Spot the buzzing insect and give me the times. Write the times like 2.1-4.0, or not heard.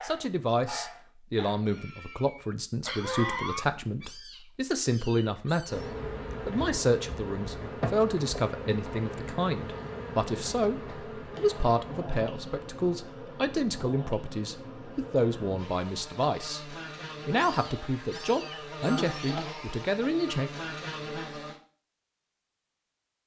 5.7-21.6.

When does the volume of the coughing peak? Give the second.
3 s.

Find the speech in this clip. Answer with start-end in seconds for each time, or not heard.
0.0-5.8, 6.5-20.5.